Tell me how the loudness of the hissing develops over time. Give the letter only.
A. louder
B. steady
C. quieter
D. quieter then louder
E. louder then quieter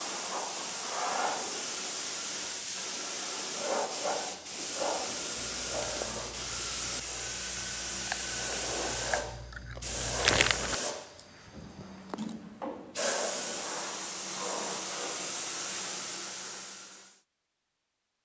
B.